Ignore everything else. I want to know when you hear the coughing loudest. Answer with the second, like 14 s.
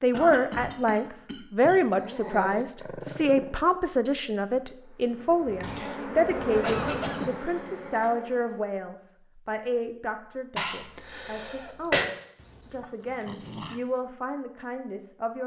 12 s.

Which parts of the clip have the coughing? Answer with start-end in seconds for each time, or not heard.
0.1-2.0, 6.6-7.3, 10.6-12.1.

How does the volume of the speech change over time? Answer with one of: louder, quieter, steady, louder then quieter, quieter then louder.
quieter.